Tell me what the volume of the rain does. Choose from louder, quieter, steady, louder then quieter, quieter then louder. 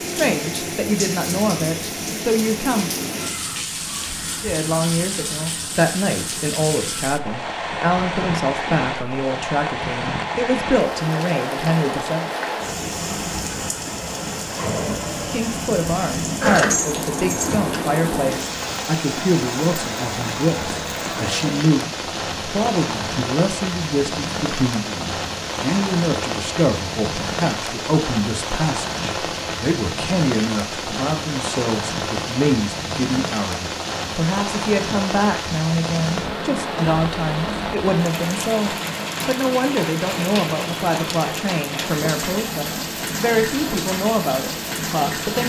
steady.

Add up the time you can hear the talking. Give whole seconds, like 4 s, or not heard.
41 s.